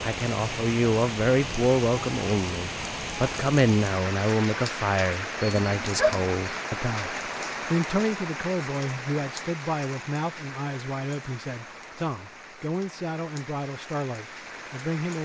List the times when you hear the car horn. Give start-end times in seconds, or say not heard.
not heard.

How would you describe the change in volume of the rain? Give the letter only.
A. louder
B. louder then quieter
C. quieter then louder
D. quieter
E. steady
D.